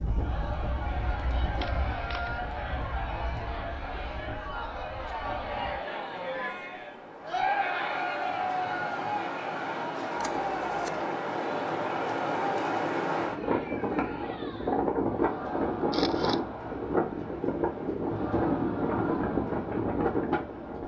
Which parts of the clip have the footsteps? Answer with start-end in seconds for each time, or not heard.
not heard.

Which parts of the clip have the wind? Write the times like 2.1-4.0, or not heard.
0.0-20.8.